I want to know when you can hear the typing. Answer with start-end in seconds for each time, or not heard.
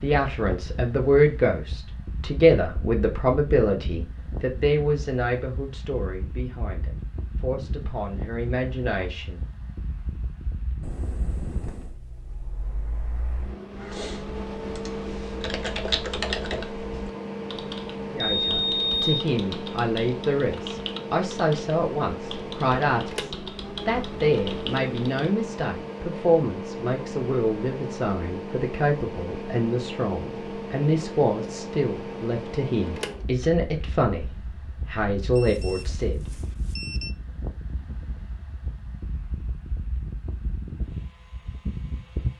13.8-25.3.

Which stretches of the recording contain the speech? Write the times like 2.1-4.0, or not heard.
0.0-9.4, 18.1-34.3, 34.9-36.2.